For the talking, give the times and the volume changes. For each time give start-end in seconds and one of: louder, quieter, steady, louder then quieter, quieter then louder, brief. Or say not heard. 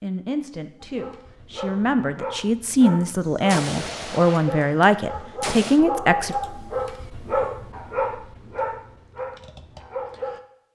0.0-6.3 louder.